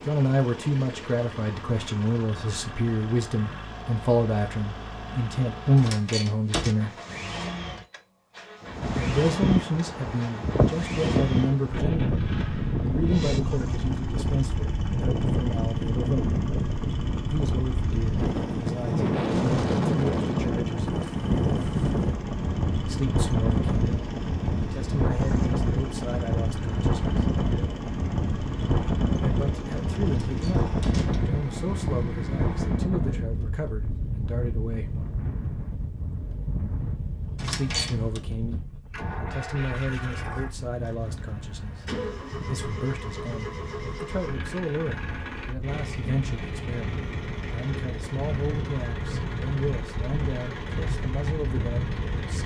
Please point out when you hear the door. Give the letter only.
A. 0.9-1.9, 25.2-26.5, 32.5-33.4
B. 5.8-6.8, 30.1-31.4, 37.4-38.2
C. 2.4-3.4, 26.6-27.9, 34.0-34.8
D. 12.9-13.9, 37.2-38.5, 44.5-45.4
B.